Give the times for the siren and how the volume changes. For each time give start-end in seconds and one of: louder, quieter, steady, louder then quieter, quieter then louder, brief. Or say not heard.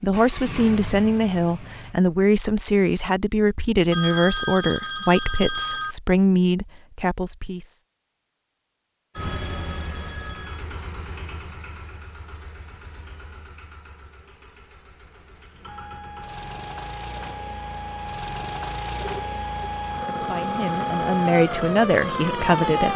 15.7-22.9 louder.